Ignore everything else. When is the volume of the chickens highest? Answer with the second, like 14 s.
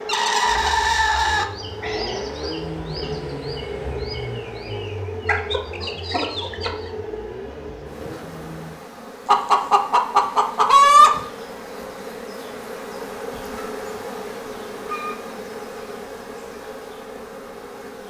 11 s.